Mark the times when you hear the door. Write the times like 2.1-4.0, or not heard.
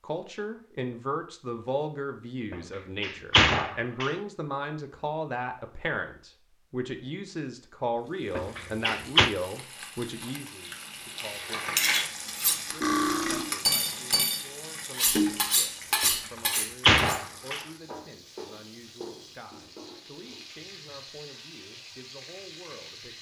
2.5-4.2, 8.3-9.3, 16.0-17.6.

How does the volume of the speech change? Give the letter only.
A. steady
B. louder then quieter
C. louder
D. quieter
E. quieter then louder
D.